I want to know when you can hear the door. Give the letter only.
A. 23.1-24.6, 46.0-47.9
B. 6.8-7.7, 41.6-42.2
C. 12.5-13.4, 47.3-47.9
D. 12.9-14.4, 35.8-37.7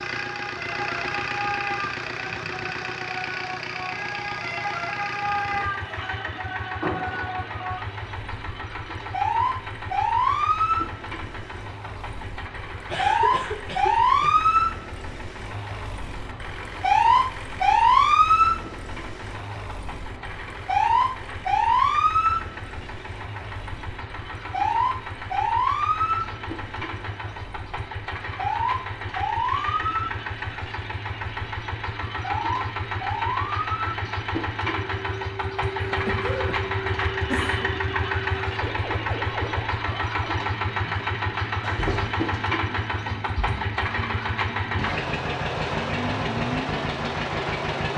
B.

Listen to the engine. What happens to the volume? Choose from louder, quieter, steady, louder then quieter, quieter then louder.
quieter then louder.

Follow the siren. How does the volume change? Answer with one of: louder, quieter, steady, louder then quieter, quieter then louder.
louder then quieter.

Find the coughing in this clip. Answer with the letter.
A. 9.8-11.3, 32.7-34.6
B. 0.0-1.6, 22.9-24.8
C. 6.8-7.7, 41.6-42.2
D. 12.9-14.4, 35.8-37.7
D.